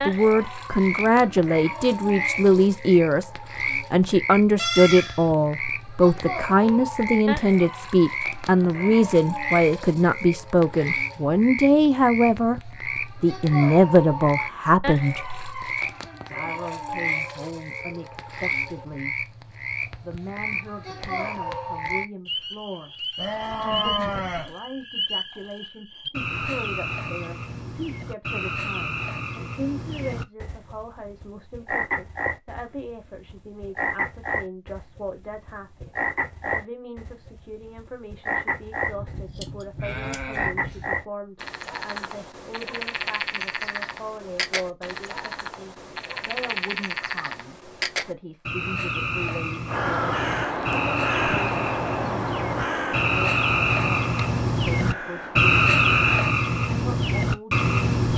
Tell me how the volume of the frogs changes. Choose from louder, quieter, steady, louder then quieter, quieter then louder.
louder.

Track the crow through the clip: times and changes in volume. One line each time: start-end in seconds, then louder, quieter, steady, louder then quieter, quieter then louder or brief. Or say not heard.
49.6-56.2 quieter.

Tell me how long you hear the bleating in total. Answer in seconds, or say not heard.
4 s.